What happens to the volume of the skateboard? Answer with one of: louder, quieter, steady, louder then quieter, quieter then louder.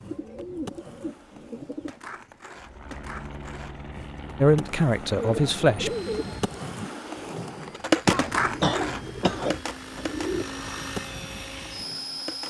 louder then quieter.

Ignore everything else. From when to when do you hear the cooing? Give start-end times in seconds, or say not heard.
0.1-1.9, 5.2-6.4, 8.5-10.4.